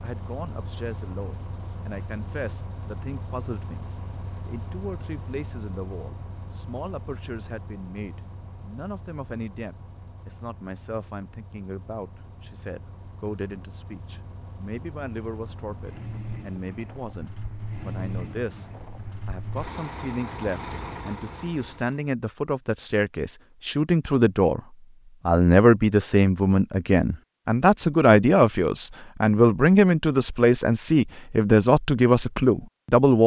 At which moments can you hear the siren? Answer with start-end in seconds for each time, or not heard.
not heard.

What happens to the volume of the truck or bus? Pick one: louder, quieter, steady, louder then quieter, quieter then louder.
quieter then louder.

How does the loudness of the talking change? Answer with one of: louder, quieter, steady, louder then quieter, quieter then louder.
louder.